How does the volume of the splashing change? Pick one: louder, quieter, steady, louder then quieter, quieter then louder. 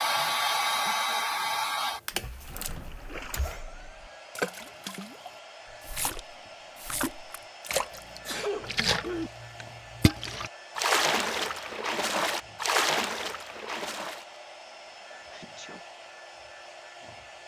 louder.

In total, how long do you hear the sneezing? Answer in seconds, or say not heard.
4 s.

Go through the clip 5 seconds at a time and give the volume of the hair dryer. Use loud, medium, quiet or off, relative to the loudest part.
loud, quiet, quiet, quiet.